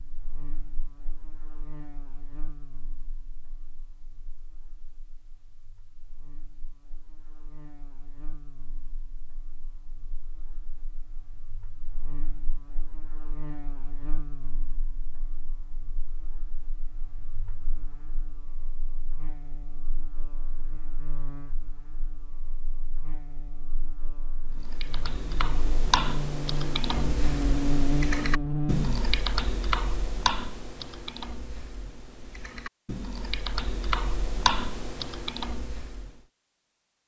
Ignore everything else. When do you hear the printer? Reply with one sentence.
The printer can't be heard in this clip.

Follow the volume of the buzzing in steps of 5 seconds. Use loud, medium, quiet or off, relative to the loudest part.
quiet, quiet, quiet, quiet, quiet, loud, off, off.